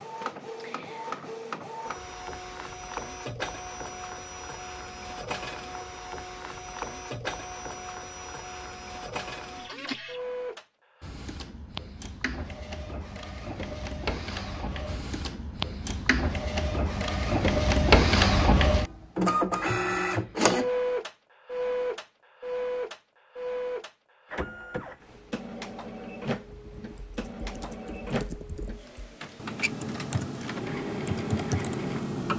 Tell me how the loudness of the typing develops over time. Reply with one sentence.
The volume of the typing goes up.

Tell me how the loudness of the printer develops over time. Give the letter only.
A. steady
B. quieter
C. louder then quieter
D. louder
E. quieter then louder
C.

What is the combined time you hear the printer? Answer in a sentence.
The printer can be heard for 32 seconds in total.